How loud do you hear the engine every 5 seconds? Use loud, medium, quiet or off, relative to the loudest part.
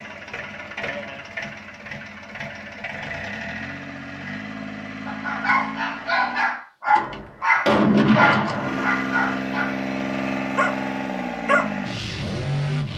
medium, loud, loud.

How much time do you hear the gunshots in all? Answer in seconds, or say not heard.
2 s.